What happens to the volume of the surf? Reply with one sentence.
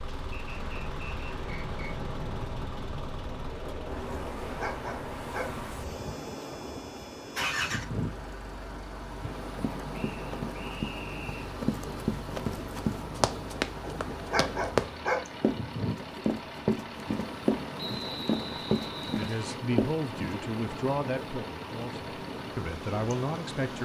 The volume of the surf stays about the same.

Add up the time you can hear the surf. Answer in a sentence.
The surf can be heard for 24 seconds in total.